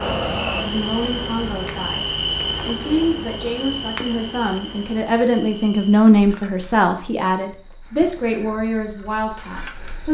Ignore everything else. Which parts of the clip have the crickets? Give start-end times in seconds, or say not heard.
0.0-10.0.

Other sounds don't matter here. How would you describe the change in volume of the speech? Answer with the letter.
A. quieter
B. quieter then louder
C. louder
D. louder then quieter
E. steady
D.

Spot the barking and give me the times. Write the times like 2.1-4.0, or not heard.
not heard.